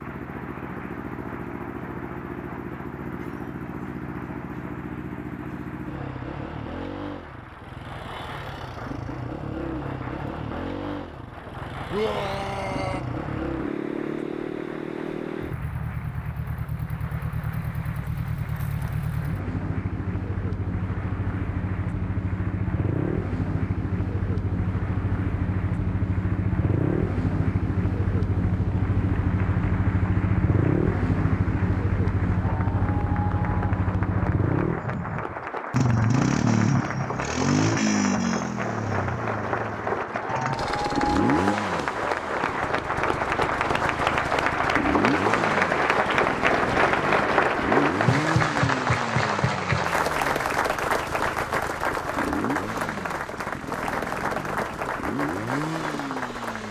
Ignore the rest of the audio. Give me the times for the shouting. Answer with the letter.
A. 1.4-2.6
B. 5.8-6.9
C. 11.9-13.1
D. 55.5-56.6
C.